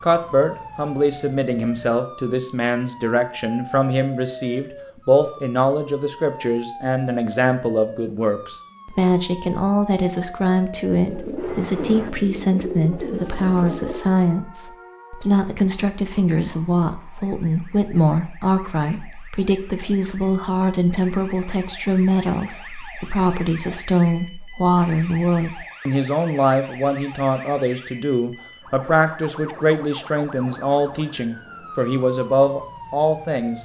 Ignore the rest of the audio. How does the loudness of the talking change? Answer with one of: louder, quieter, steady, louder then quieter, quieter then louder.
steady.